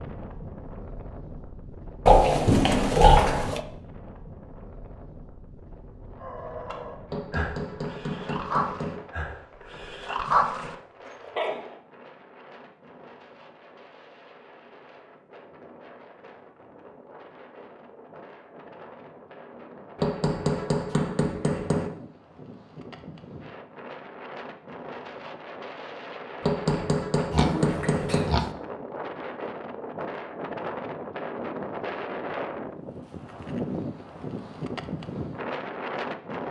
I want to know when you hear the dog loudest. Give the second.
10 s.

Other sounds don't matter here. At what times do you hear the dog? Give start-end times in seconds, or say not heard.
6.2-11.8.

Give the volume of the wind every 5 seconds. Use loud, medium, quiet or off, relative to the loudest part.
medium, quiet, quiet, quiet, medium, medium, loud, loud.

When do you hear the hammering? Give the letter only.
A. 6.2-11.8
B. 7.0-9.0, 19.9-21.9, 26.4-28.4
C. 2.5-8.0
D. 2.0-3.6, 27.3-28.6
B.